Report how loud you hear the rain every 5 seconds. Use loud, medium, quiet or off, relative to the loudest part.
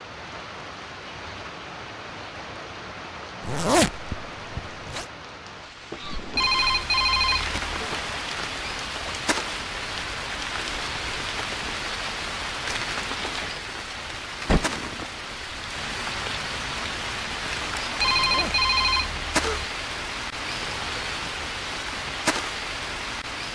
medium, loud, loud, loud, loud.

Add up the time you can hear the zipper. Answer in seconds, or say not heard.
2 s.